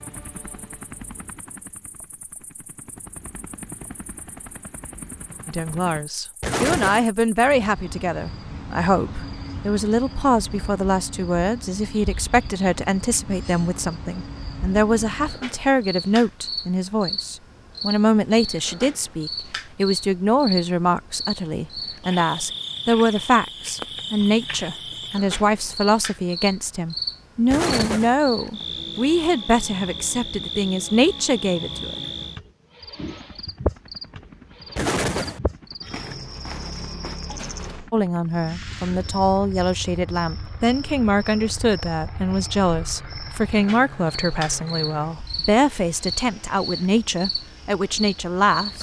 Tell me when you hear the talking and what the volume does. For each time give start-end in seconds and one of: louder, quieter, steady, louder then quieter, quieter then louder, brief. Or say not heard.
5.5-32.0 steady
37.9-48.7 steady.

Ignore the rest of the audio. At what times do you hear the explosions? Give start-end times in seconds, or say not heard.
6.4-7.0, 27.5-28.1, 34.8-35.4.